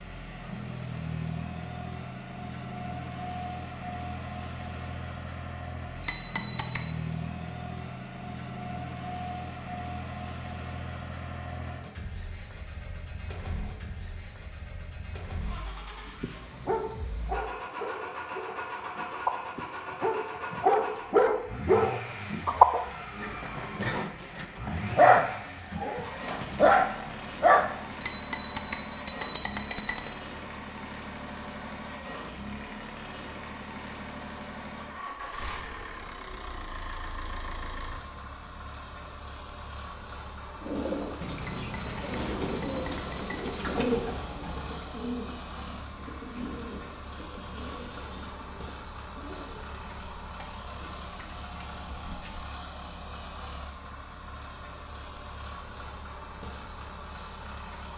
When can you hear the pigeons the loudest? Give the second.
44 s.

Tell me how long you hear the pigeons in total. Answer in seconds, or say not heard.
12 s.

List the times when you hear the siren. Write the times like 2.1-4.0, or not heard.
not heard.